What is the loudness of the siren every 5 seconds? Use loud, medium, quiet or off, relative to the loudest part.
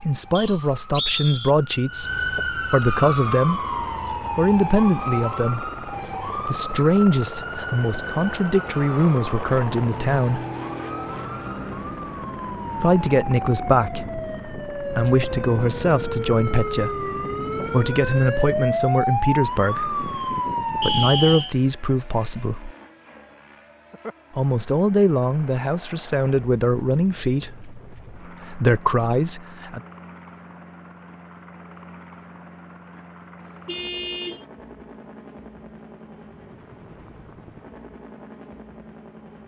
loud, medium, medium, loud, loud, off, off, off.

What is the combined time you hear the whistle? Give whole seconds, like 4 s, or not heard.
2 s.